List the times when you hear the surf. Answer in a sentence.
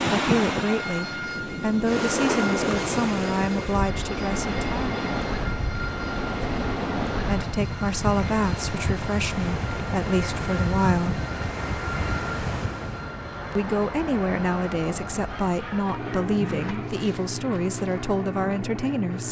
The surf can be heard from 0.0 to 13.1 s.